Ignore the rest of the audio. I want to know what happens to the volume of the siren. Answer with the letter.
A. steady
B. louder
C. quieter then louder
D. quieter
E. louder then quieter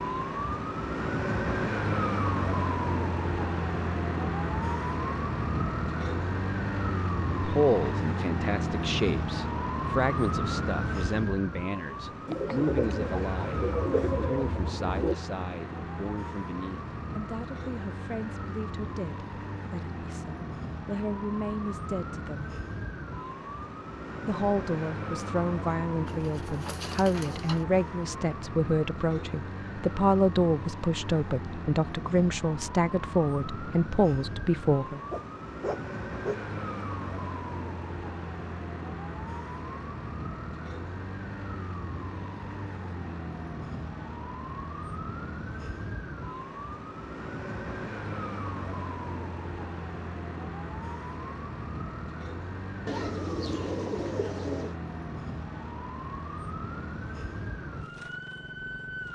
D.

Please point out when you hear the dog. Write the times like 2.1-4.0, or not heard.
35.1-36.5.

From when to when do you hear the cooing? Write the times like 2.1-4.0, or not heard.
12.2-15.2, 26.1-27.6, 52.9-54.8.